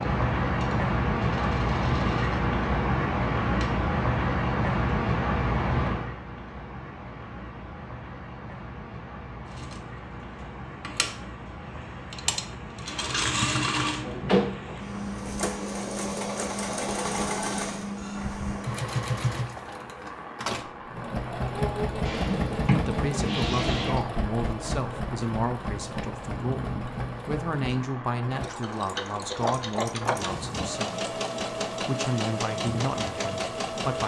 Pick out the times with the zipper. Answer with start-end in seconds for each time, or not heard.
not heard.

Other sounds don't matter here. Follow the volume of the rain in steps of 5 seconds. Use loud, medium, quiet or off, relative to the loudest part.
loud, medium, quiet, quiet, quiet, quiet, quiet.